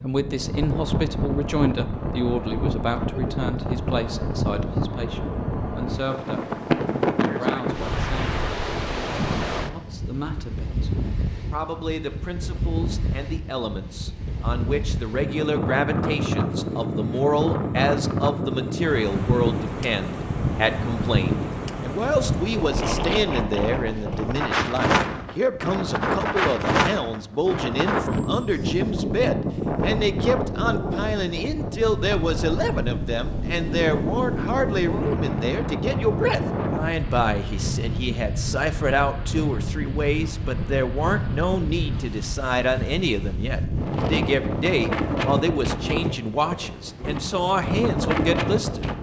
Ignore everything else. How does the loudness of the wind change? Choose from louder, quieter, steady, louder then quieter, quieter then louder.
steady.